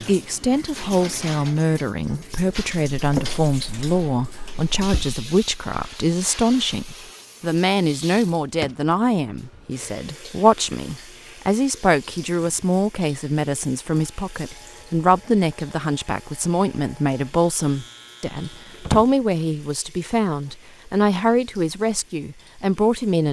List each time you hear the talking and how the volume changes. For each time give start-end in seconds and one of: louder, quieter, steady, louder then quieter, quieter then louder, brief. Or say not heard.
0.1-23.2 steady.